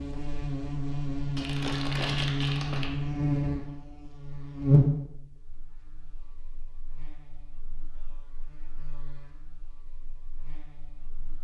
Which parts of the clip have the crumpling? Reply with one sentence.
You can hear the crumpling from 1.4 to 2.9 s.